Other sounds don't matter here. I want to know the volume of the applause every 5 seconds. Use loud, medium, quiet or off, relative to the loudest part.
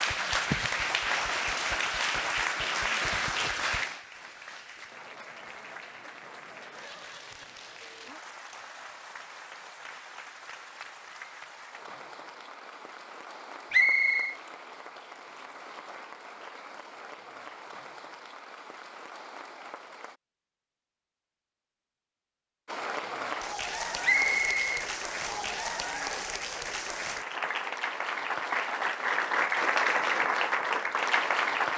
loud, quiet, quiet, quiet, medium, loud, loud.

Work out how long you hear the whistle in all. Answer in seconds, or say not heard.
2 s.